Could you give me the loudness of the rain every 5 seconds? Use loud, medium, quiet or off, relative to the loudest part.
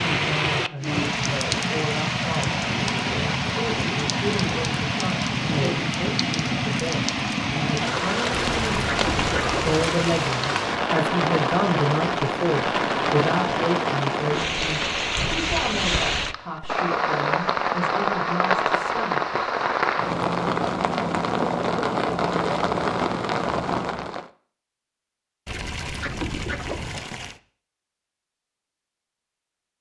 loud, loud, loud, loud, loud, off.